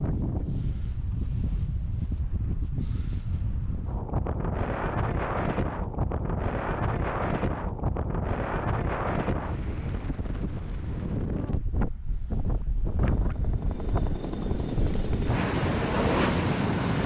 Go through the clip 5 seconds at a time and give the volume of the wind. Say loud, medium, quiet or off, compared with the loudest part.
medium, loud, medium, loud.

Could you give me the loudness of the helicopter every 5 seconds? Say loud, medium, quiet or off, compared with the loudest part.
off, off, loud, loud.